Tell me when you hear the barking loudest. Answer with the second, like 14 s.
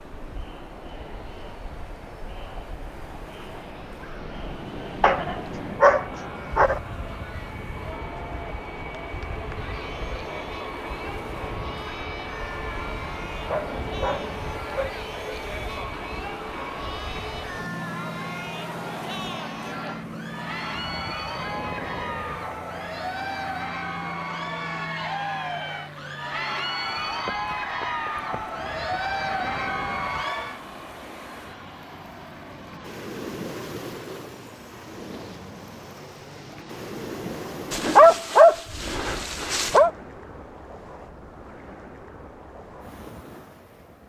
38 s.